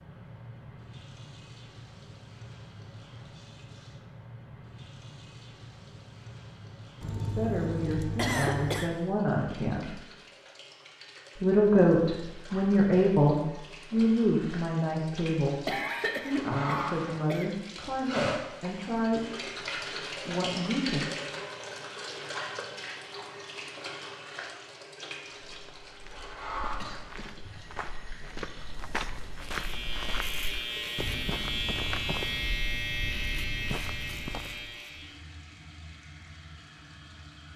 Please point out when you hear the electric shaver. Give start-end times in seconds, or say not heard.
29.4-35.2.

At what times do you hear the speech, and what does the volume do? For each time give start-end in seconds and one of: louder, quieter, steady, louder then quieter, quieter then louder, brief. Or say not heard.
7.2-9.9 brief
11.3-21.1 quieter.